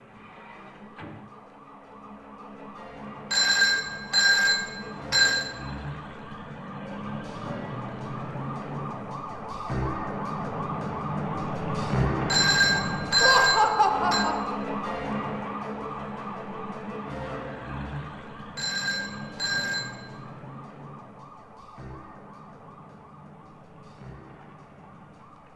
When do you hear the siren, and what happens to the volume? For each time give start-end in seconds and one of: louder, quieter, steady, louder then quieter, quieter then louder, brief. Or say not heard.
0.0-25.5 louder then quieter.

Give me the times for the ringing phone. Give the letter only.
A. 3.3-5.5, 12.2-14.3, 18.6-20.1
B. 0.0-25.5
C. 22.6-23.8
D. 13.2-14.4
A.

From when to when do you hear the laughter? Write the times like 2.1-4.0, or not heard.
13.2-14.4.